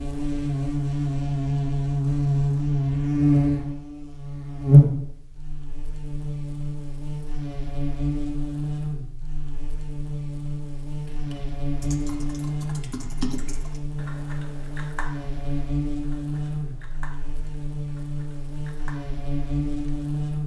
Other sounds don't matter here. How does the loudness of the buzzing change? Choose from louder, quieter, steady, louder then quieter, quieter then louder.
quieter.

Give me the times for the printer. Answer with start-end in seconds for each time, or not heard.
not heard.